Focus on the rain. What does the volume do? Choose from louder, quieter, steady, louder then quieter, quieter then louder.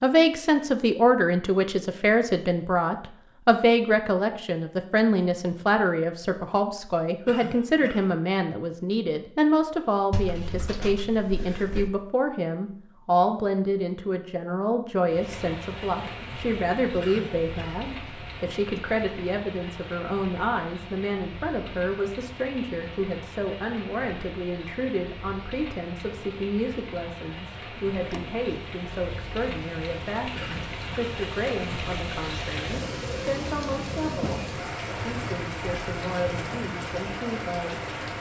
louder.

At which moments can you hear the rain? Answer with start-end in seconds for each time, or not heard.
15.1-38.1.